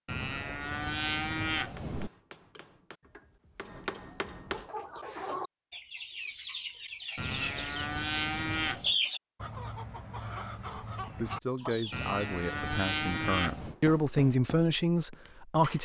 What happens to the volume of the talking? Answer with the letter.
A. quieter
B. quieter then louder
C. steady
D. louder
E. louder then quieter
D.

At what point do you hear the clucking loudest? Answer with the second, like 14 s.
9 s.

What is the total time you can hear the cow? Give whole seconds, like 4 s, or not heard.
6 s.